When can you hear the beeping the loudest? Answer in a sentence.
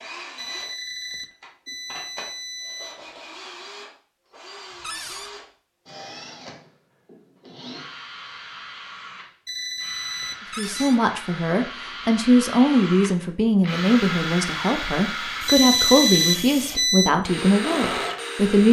The volume of the beeping peaks at 16 seconds.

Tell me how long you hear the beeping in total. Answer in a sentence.
You can hear the beeping for 6 seconds altogether.